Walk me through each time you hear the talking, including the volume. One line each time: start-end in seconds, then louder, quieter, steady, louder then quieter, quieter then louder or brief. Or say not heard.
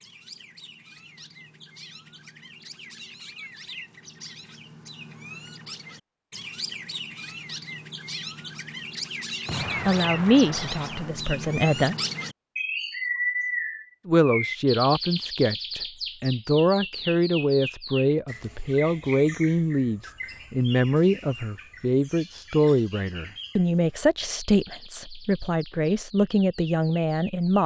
9.8-11.9 brief
14.1-27.6 steady.